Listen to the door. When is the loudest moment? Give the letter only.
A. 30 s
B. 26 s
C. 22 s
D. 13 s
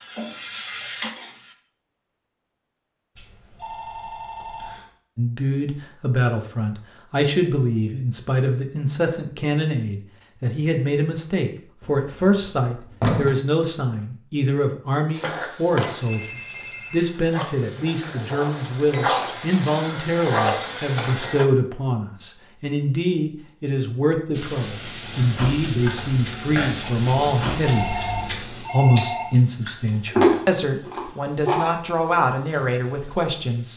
D.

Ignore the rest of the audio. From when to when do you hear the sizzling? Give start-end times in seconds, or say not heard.
0.0-1.6, 15.2-21.4, 24.3-33.7.